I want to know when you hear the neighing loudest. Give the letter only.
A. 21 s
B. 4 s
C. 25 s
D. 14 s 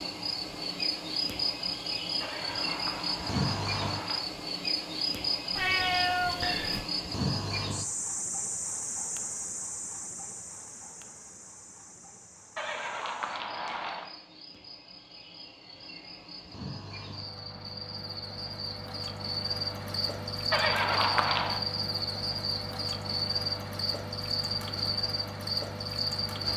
A.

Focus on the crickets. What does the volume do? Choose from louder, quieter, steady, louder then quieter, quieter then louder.
quieter then louder.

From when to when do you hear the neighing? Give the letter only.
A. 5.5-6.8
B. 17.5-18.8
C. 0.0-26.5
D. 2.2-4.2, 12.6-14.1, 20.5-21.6
D.